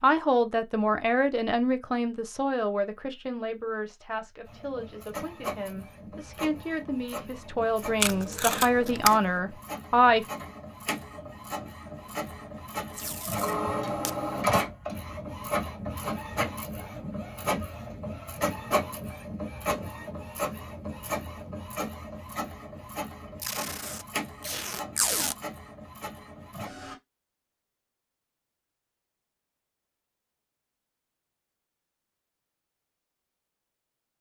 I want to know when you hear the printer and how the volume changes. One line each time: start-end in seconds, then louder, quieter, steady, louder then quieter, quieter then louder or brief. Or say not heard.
4.5-26.9 louder then quieter.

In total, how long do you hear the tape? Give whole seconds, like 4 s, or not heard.
4 s.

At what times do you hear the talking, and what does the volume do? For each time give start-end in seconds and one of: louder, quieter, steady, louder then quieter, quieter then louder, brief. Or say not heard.
0.0-10.2 quieter then louder.